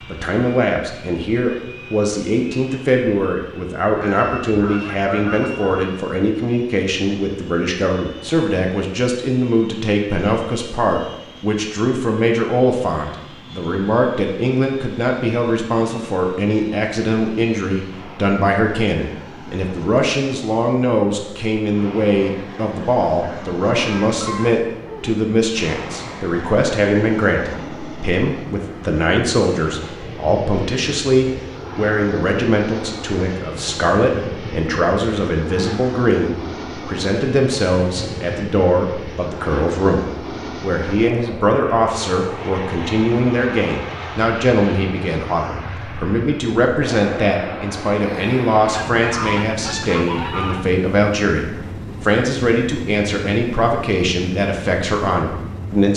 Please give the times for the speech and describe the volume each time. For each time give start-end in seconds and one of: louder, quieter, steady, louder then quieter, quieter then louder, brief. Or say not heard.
0.1-55.9 steady.